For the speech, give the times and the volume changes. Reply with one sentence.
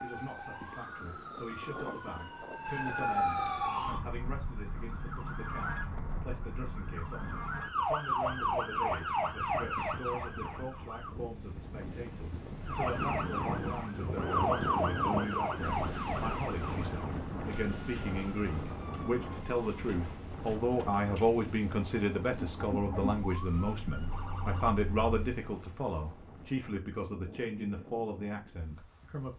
You can hear the speech from 0.0 to 29.3 s, getting louder.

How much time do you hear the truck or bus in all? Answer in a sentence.
You can't hear the truck or bus here.